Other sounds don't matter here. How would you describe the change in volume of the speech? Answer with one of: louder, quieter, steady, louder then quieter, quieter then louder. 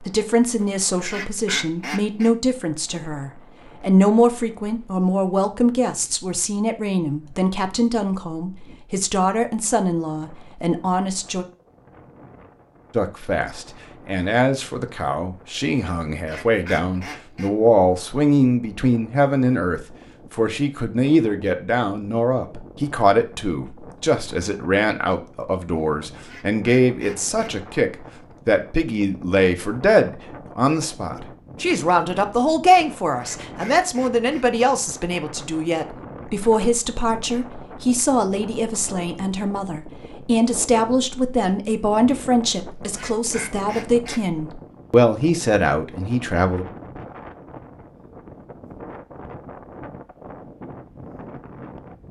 steady.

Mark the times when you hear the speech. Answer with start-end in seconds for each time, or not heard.
0.0-11.4, 12.9-46.6.